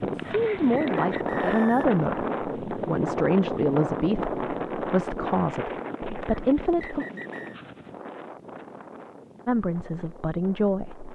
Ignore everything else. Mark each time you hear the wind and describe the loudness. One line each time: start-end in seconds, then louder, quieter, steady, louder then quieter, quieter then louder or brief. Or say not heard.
0.0-11.1 quieter.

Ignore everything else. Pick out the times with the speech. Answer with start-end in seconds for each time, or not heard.
0.0-7.0, 9.4-11.1.